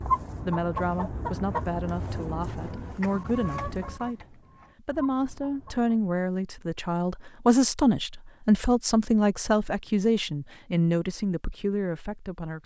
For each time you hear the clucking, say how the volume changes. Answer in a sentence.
The clucking can be heard from 0.0 to 6.0 s, getting quieter.